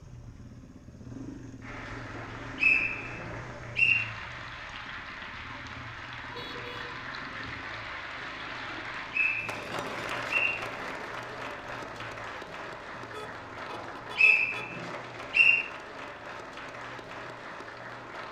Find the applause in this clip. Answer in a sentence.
The applause can be heard from 1.6 to 18.2 s.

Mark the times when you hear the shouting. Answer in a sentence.
The shouting can't be heard in this clip.